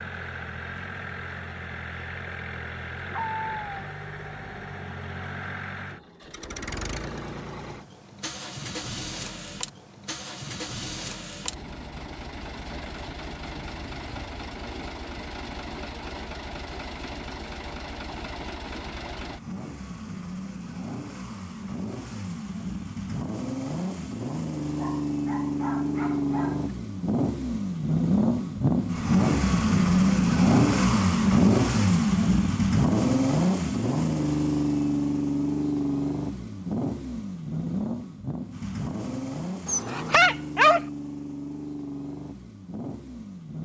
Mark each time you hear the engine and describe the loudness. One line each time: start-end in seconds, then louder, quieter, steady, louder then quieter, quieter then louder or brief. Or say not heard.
0.0-43.5 louder then quieter.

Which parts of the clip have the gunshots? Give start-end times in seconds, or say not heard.
not heard.